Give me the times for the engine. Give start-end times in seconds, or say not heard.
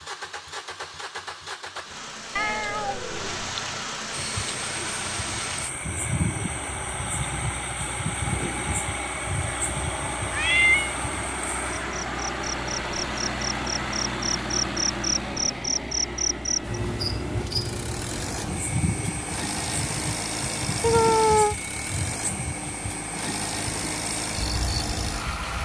0.0-25.6.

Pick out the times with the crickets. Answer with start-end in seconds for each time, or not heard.
4.1-25.6.